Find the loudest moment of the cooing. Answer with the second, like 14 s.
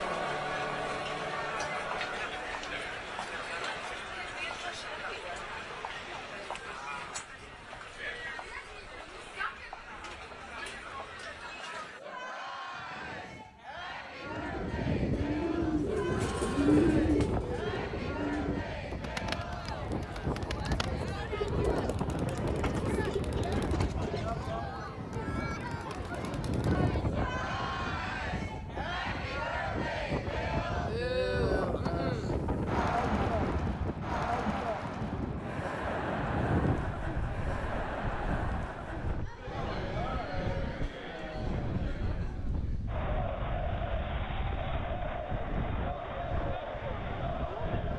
17 s.